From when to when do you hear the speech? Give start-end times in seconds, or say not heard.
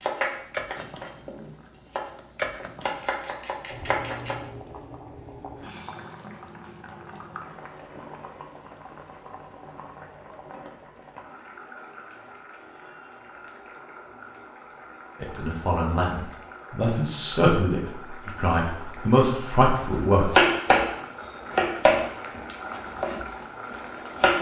15.2-20.3.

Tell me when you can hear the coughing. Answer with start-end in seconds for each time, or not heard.
not heard.